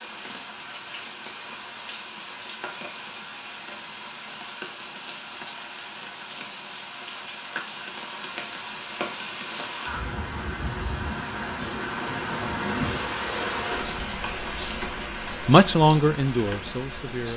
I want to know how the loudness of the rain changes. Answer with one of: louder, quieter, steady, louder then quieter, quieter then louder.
louder.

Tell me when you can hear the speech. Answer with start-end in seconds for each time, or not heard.
15.4-17.3.